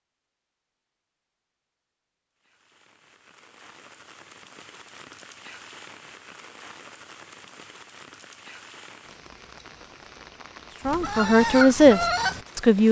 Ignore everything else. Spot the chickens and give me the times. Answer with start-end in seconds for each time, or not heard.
10.8-12.8.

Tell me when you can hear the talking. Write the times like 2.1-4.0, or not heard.
10.8-12.8.